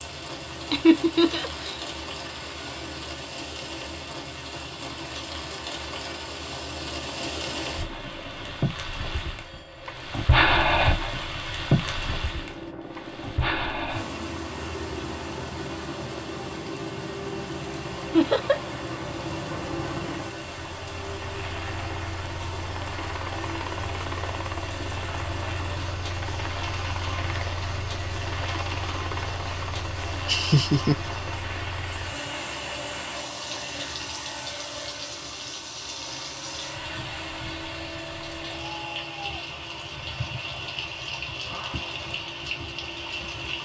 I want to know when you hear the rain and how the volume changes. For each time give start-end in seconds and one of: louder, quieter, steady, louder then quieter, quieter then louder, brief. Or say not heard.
0.0-43.6 louder then quieter.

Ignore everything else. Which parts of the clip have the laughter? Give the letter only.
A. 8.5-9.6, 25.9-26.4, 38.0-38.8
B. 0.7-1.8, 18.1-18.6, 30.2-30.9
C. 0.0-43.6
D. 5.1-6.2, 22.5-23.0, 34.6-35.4
B.